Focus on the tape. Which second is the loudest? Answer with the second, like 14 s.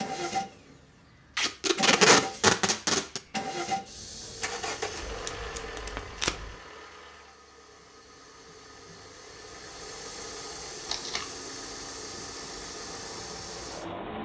2 s.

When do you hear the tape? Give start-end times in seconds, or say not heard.
1.4-3.2, 5.0-6.5, 10.8-11.2.